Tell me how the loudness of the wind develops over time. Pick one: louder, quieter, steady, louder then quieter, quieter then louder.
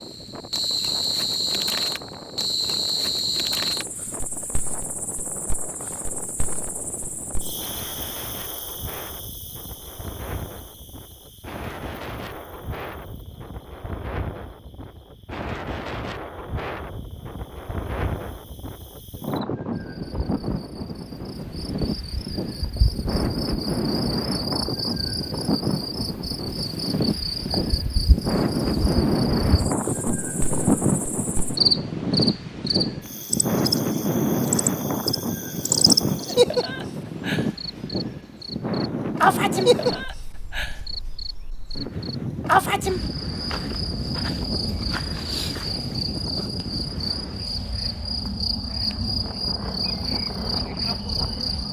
louder then quieter.